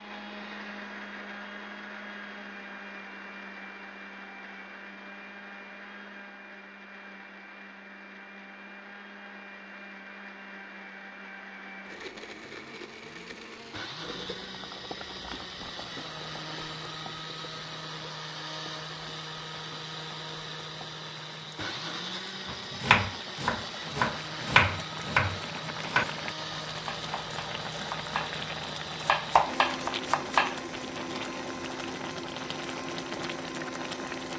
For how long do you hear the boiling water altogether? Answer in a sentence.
The boiling water can be heard for 20 seconds in total.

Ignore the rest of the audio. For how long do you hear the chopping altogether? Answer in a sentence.
You can hear the chopping for 7 seconds altogether.